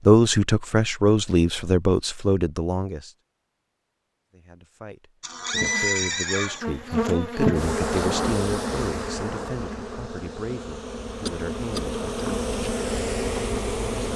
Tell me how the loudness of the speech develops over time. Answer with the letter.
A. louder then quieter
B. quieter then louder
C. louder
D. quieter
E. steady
D.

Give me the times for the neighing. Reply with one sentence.
The neighing can be heard from 5.2 to 6.6 s.